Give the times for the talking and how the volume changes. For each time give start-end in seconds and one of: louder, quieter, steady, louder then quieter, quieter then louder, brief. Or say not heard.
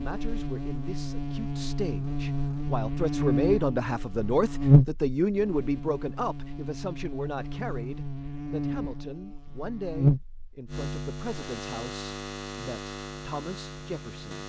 0.0-14.4 louder then quieter.